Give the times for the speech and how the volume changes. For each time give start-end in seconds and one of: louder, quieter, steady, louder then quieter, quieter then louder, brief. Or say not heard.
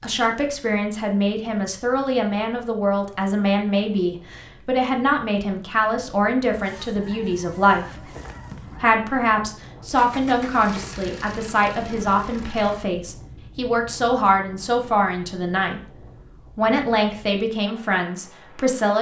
0.0-15.8 steady
16.6-18.9 brief.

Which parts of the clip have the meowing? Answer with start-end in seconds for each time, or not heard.
not heard.